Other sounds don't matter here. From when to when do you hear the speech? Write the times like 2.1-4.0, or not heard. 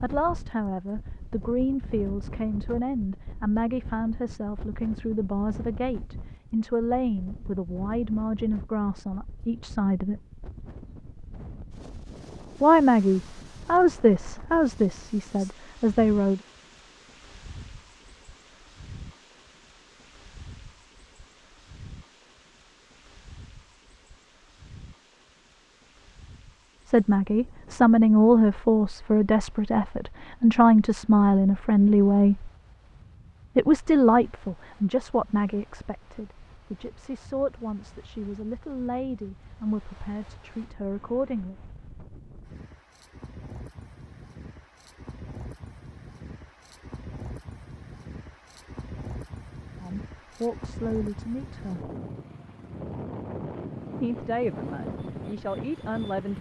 0.0-10.2, 12.6-16.4, 26.9-32.5, 33.5-41.5, 49.8-51.9, 54.0-56.3.